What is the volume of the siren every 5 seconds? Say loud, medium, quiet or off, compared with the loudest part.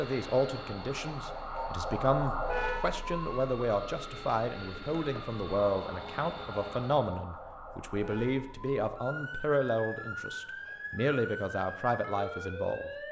loud, medium, loud.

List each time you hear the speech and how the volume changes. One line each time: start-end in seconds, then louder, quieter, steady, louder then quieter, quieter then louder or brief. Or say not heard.
0.0-12.9 steady.